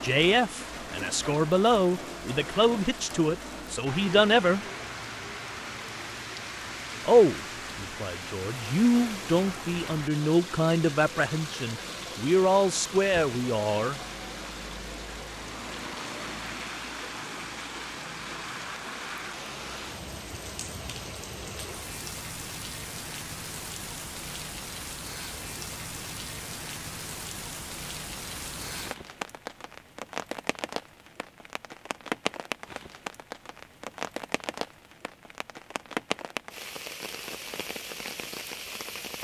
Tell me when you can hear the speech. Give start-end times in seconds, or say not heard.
0.0-4.6, 7.0-14.0.